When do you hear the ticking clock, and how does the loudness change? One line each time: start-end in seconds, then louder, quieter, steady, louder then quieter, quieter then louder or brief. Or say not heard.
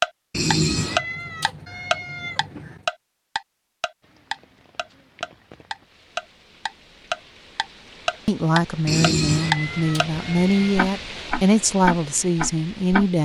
0.0-10.1 quieter then louder
10.8-13.1 brief.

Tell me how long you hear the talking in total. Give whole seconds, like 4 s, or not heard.
5 s.